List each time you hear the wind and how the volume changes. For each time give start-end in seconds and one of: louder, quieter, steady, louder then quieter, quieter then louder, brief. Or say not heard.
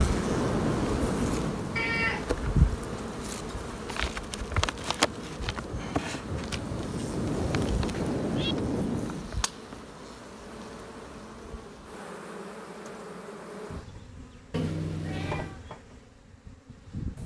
0.0-9.3 quieter then louder.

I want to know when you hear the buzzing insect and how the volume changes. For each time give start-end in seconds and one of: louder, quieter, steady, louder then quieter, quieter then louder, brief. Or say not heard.
0.0-17.2 quieter.